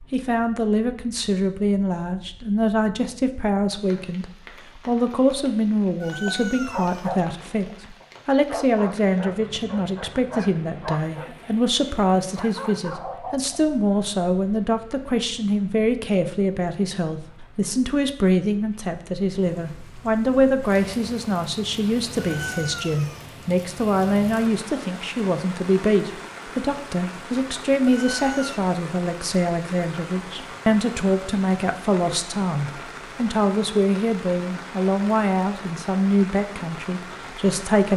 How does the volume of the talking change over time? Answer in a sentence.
The volume of the talking stays about the same.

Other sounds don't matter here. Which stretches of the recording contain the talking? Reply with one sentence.
The talking can be heard from 0.1 to 37.9 s.